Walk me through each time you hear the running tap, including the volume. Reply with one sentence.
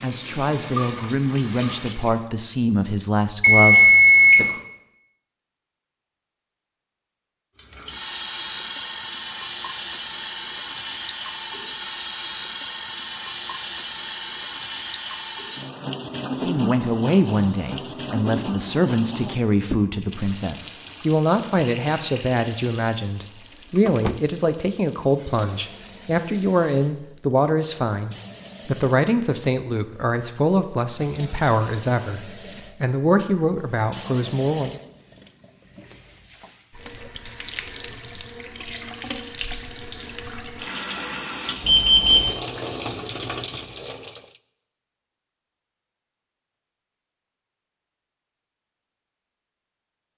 The running tap can be heard briefly from 0.0 to 2.3 s; and from 7.6 to 44.4 s, getting quieter then louder.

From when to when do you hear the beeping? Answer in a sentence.
The beeping can be heard from 3.4 to 4.5 s and from 41.6 to 42.3 s.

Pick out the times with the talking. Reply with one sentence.
The talking can be heard from 0.0 to 4.6 s and from 16.4 to 34.8 s.